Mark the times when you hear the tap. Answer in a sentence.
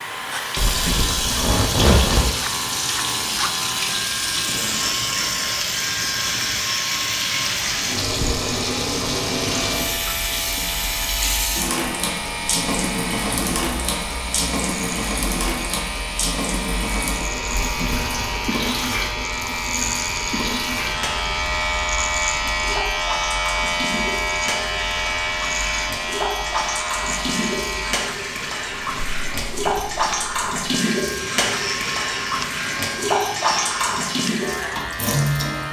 You can hear the tap from 0.0 to 35.6 s.